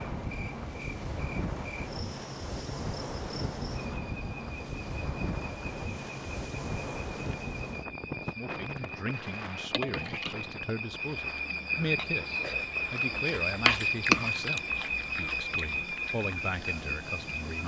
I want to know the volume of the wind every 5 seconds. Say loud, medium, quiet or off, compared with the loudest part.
loud, loud, medium, medium.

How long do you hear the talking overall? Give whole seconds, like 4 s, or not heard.
9 s.